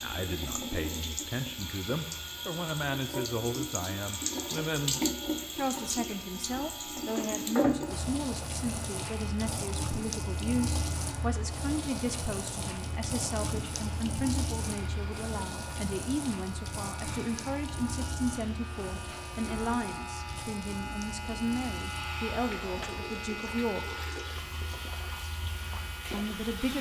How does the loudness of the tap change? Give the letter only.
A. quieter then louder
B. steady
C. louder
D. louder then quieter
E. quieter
E.